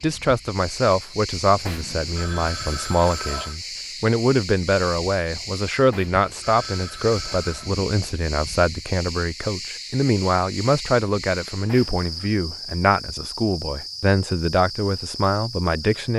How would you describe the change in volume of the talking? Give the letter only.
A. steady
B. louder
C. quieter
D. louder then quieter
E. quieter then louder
A.